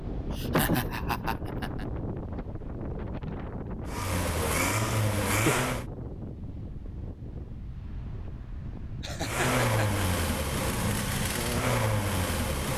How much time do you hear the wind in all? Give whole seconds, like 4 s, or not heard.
13 s.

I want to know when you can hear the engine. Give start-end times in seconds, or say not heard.
3.9-5.8, 9.2-12.7.